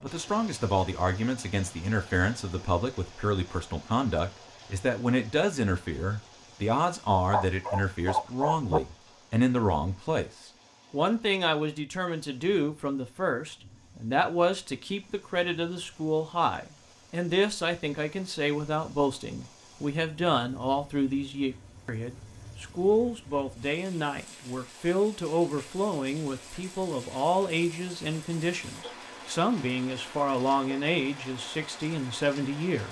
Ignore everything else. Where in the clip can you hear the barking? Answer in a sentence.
The barking can be heard from 7.3 to 8.8 s.